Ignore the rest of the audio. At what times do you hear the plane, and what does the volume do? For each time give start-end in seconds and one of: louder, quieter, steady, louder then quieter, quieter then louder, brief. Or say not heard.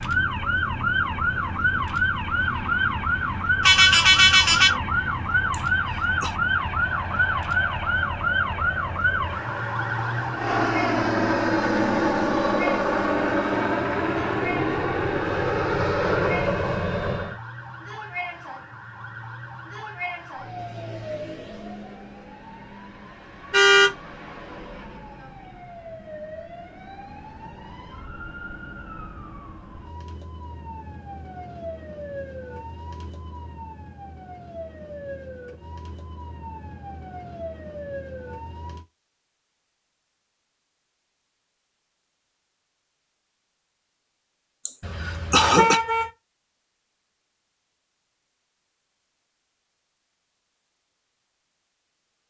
0.0-17.4 louder.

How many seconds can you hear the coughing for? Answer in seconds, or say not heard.
2 s.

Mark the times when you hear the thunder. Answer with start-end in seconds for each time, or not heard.
not heard.